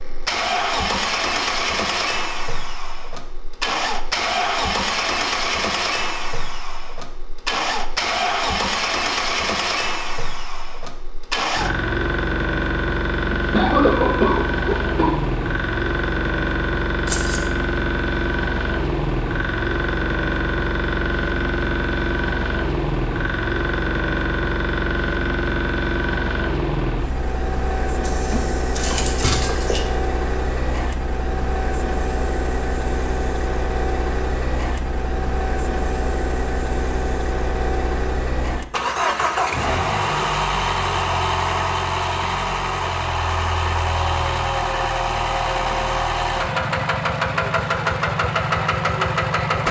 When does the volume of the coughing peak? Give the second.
14 s.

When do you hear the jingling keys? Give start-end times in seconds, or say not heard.
17.1-17.5, 28.0-29.8.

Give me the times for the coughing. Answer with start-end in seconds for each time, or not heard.
13.3-15.1.